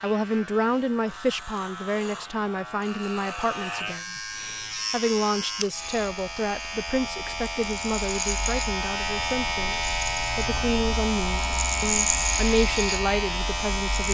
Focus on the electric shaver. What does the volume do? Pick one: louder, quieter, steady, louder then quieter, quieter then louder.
louder.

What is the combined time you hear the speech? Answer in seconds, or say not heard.
13 s.